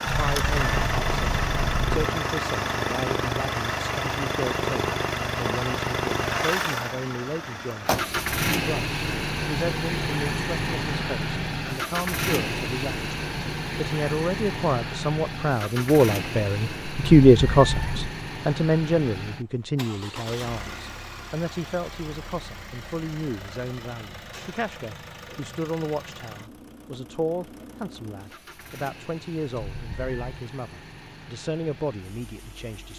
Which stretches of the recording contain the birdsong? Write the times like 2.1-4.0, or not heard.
not heard.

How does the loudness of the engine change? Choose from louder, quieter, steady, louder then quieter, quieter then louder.
quieter.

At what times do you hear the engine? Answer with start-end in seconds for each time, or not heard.
0.0-32.9.